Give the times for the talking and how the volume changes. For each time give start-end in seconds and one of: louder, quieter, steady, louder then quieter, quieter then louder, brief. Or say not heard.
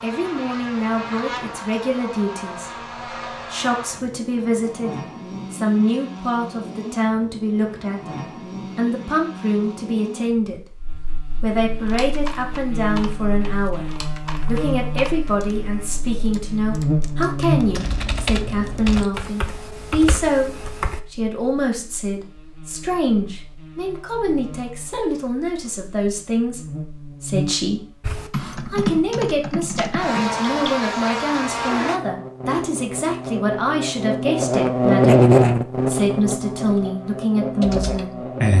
0.0-38.3 steady.